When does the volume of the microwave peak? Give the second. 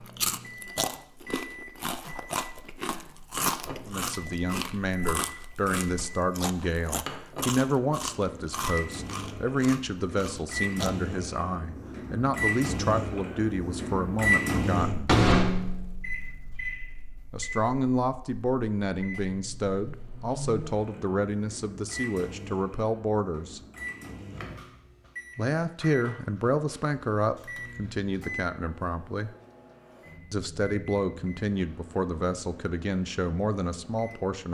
15 s.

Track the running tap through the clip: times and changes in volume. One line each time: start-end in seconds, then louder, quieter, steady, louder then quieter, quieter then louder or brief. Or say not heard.
not heard.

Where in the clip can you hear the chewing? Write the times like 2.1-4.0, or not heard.
0.0-10.9.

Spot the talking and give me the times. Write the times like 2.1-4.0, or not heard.
3.9-15.1, 17.3-23.6, 25.4-29.3, 30.3-34.4.